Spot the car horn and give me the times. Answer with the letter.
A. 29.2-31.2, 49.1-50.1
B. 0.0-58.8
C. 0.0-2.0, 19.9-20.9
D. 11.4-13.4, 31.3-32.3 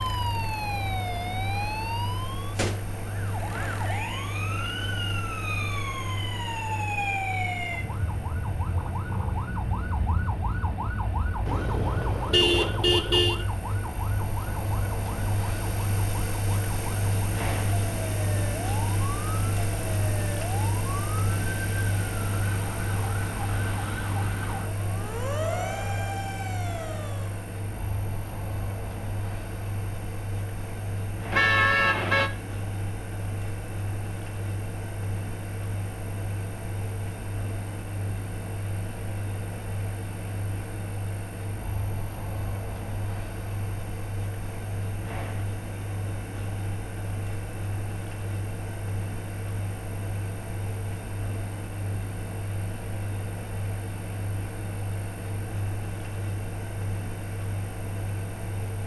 D.